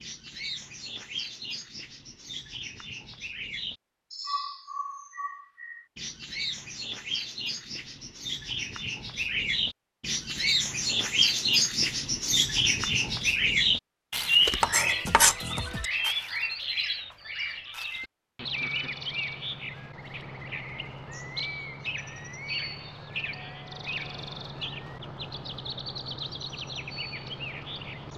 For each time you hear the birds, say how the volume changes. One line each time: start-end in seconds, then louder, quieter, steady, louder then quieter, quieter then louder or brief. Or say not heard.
0.0-28.1 louder then quieter.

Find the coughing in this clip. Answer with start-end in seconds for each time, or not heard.
not heard.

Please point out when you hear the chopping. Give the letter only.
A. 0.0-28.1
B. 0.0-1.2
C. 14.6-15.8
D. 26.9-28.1
C.